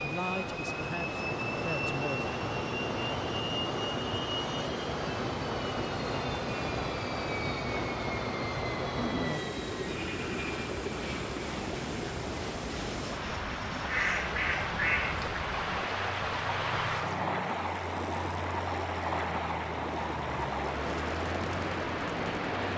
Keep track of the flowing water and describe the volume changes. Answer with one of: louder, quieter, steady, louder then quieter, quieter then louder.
steady.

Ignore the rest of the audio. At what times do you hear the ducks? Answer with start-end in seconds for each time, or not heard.
13.8-15.2.